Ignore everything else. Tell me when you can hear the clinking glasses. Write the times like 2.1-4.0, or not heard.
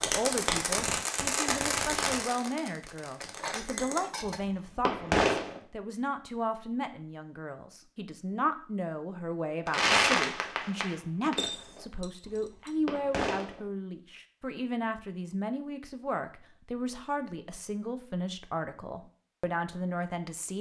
3.2-4.5, 11.3-12.7.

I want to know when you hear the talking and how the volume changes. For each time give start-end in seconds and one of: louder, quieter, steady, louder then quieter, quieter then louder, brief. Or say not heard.
0.0-20.5 steady.